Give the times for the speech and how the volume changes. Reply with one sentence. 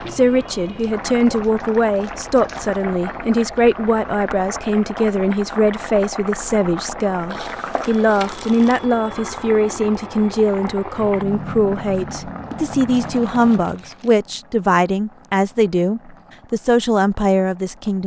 You can hear the speech from 0.1 to 18.0 s, at a steady volume.